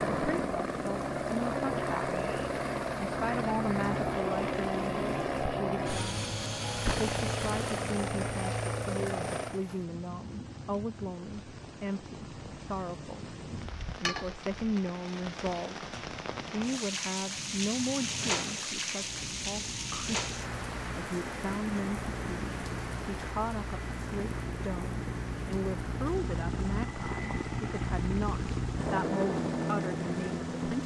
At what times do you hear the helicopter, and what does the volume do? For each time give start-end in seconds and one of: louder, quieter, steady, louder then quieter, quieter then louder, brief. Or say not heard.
0.0-9.6 steady
18.9-30.8 louder.